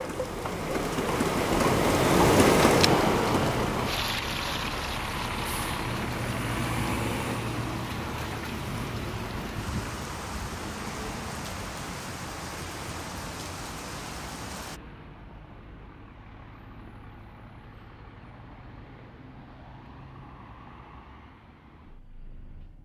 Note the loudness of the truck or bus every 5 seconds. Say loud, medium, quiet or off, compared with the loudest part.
loud, loud, medium, quiet, quiet.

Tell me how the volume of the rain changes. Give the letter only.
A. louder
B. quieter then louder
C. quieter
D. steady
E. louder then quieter
C.